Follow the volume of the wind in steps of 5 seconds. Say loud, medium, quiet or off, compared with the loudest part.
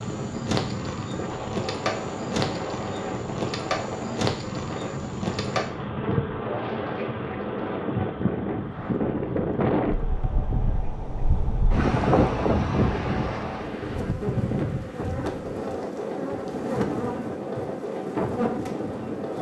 medium, loud, loud, medium.